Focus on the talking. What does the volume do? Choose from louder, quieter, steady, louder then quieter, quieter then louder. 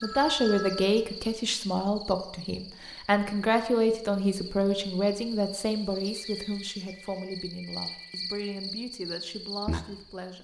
quieter.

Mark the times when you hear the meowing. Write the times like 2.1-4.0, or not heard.
not heard.